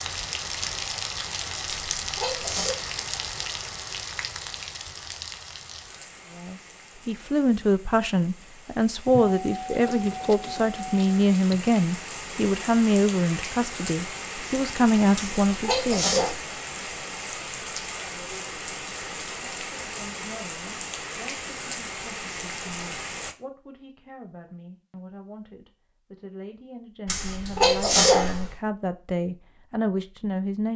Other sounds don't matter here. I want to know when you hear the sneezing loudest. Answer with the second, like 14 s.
28 s.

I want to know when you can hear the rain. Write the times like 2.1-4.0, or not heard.
0.0-23.4.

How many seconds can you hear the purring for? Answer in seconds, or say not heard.
not heard.